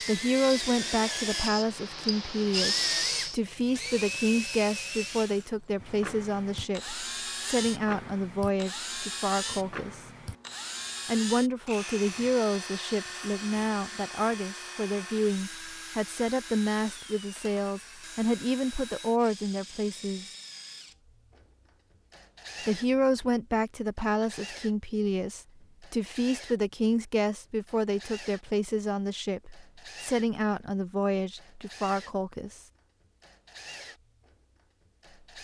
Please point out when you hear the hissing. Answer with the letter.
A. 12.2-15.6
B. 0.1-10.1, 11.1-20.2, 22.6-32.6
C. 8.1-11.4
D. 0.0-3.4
D.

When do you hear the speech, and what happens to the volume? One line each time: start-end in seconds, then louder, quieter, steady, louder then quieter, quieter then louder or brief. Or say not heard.
0.1-10.1 steady
11.1-20.2 steady
22.6-32.6 steady.